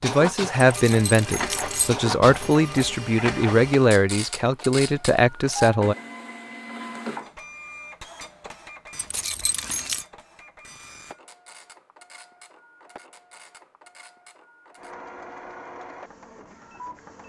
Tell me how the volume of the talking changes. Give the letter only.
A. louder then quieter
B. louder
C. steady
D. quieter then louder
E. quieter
C.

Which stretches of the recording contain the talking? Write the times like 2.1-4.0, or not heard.
0.0-6.0.